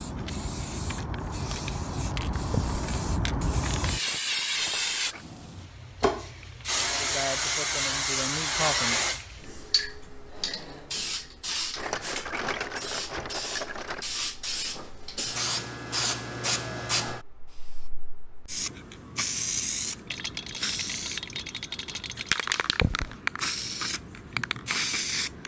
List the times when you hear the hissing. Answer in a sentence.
You can hear the hissing from 0.0 to 25.4 s.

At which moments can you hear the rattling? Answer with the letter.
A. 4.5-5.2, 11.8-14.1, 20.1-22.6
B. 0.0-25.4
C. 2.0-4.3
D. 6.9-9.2
A.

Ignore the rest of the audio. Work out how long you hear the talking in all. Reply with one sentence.
The talking can be heard for 2 seconds in total.